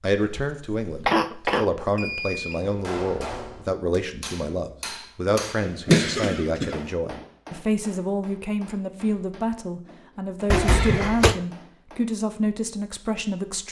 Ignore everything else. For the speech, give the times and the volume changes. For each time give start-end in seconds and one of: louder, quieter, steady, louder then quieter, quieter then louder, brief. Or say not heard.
0.0-13.6 steady.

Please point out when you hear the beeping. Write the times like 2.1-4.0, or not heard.
1.9-2.6.